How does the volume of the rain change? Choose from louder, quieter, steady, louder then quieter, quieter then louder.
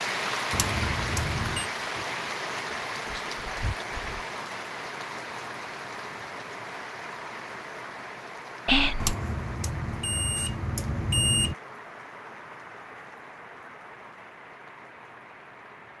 quieter.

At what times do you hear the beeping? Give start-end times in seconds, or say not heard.
0.5-1.7, 9.0-11.6.